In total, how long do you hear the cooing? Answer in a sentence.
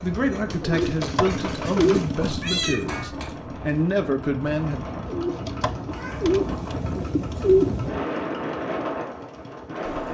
The cooing can be heard for 5 seconds in total.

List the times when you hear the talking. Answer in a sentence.
You can hear the talking from 0.0 to 5.0 s.